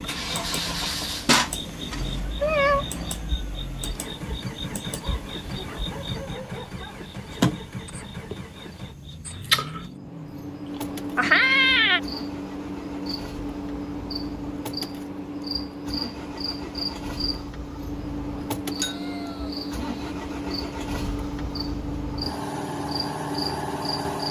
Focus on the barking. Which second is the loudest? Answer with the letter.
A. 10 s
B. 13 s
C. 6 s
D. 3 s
C.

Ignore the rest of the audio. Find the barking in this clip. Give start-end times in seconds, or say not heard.
4.9-7.0.